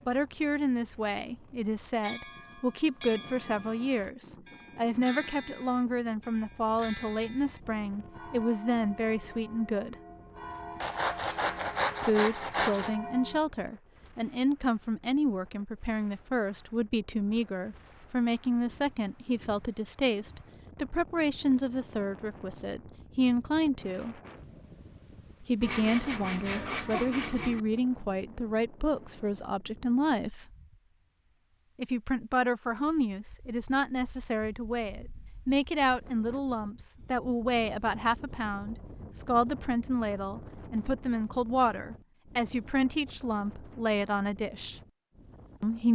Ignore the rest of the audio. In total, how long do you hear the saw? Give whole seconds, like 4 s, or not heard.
4 s.